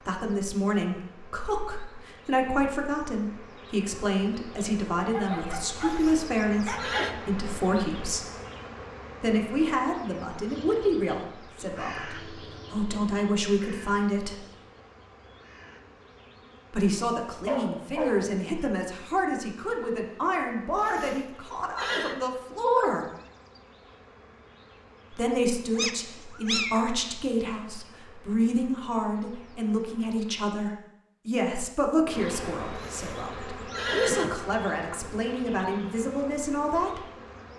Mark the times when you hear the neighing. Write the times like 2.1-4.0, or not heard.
5.8-7.2, 20.8-22.2, 32.8-34.4.